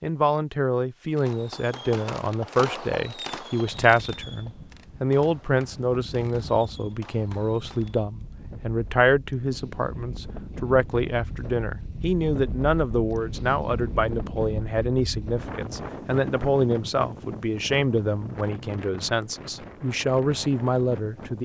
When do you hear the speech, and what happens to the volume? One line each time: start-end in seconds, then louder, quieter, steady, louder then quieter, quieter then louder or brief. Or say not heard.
0.0-21.4 steady.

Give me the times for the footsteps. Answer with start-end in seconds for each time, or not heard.
not heard.